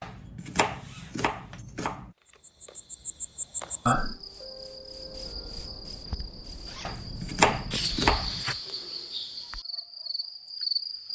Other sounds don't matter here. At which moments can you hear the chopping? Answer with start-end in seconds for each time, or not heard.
0.0-2.1, 6.8-8.4.